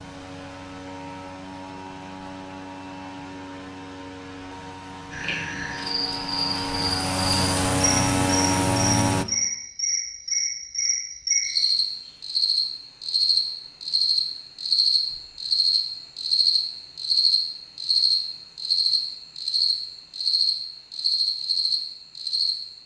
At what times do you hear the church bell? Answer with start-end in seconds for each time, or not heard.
not heard.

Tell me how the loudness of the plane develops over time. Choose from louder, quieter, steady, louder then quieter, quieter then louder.
louder.